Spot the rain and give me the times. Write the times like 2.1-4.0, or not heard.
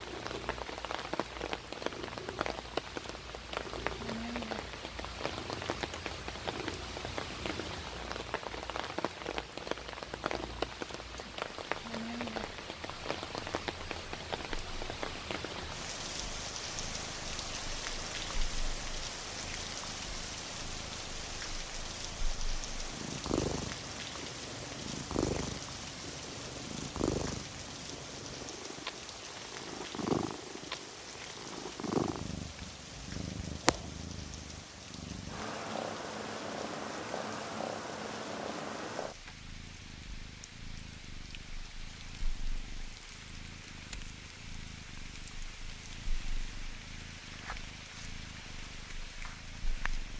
0.0-50.1.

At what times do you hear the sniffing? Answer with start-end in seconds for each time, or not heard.
not heard.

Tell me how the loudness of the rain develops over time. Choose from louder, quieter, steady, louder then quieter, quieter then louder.
quieter.